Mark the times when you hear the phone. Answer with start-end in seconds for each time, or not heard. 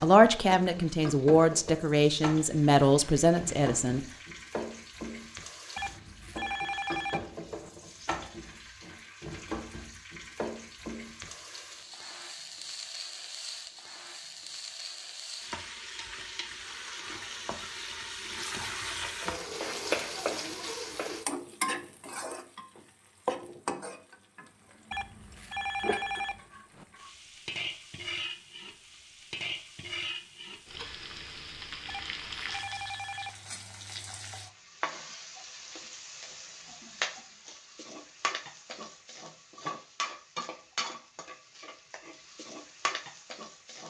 5.8-7.7, 24.9-26.9, 31.9-33.3.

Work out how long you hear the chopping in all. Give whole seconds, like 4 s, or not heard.
not heard.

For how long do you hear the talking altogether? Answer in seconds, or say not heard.
4 s.